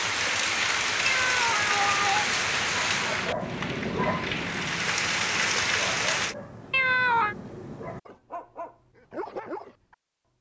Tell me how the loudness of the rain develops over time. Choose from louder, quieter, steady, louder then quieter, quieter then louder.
quieter then louder.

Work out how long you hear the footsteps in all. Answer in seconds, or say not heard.
not heard.